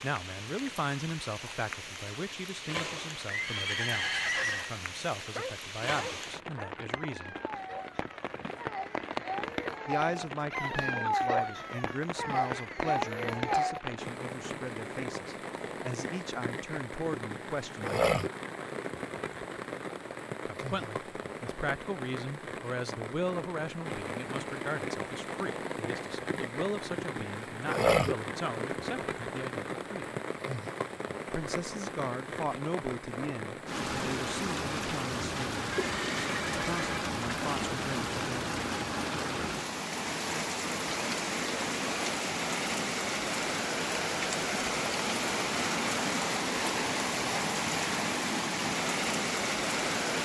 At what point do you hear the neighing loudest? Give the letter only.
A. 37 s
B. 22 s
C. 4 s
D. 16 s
C.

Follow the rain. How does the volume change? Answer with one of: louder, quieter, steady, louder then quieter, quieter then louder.
louder.